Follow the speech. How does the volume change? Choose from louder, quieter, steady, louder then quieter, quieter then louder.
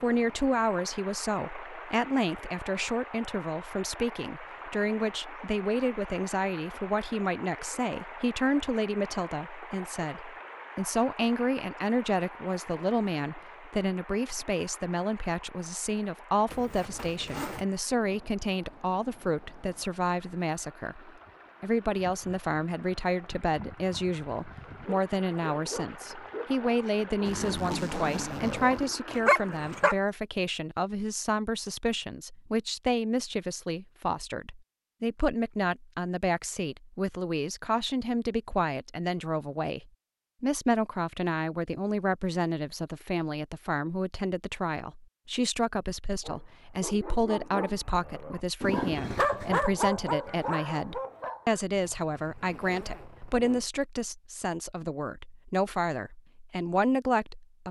steady.